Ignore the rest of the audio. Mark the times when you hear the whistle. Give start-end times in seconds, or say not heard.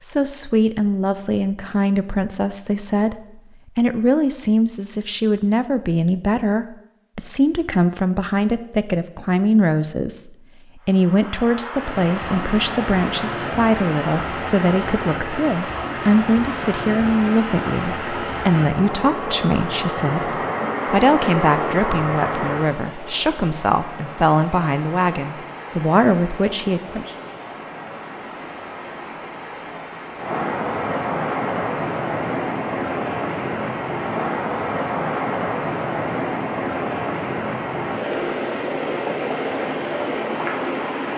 not heard.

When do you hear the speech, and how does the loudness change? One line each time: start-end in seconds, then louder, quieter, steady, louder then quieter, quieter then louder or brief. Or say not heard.
0.0-27.1 steady.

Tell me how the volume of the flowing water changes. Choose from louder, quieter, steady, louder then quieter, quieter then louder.
quieter then louder.